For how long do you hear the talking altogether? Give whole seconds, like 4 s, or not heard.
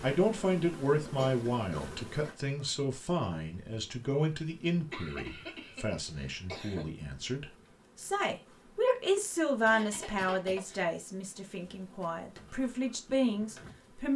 14 s.